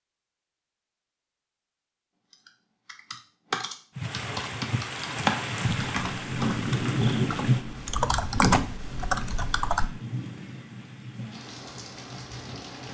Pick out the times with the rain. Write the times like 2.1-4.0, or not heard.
4.0-12.8.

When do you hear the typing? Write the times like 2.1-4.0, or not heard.
2.3-9.9.